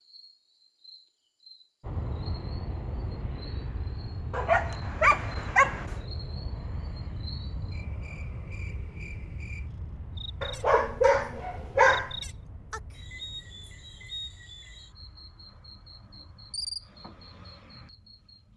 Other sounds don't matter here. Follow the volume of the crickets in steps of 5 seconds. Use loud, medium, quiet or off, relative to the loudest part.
quiet, medium, loud, loud.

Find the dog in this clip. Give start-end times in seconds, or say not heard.
4.3-6.0, 10.4-12.2.